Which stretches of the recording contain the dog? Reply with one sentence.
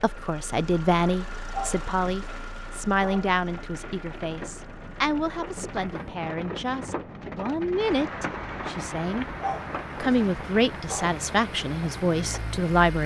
The dog can be heard from 1.5 to 3.3 s and from 9.4 to 11.2 s.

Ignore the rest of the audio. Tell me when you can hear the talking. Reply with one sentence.
The talking can be heard from 0.0 to 9.2 s and from 10.0 to 13.0 s.